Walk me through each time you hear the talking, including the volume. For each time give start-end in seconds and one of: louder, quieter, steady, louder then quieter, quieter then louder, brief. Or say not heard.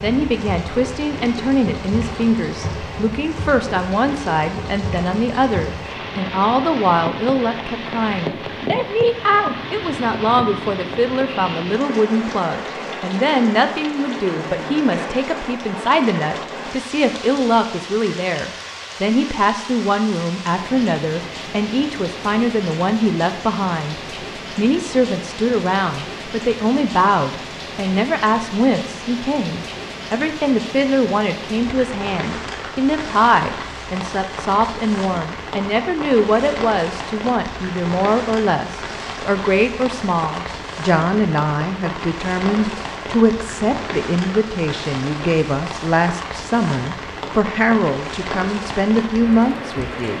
0.0-50.1 steady.